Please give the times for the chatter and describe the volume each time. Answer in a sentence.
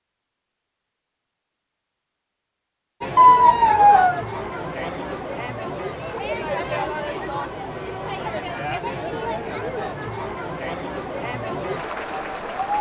You can hear the chatter from 3.0 to 12.7 s, at a steady volume.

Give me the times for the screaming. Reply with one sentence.
You can hear the screaming from 3.1 to 4.2 s.